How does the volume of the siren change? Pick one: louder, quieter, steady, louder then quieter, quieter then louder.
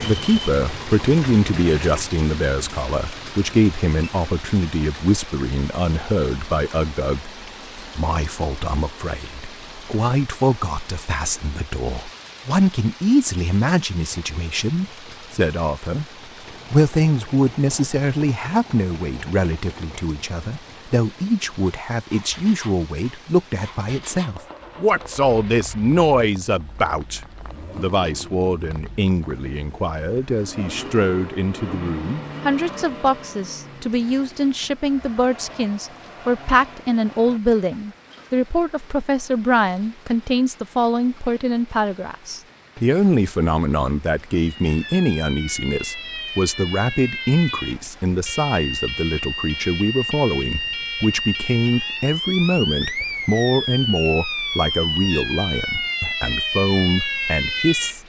louder.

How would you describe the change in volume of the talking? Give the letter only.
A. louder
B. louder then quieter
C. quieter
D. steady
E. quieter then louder
D.